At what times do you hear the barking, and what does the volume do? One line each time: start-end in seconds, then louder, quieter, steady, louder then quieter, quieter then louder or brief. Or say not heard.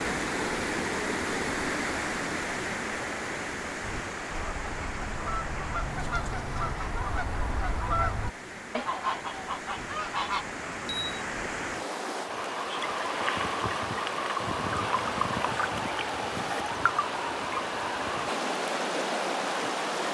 not heard.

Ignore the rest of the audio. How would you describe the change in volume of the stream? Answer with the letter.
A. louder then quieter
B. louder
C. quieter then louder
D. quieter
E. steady
C.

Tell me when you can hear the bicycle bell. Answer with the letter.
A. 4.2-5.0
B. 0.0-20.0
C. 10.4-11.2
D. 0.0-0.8
C.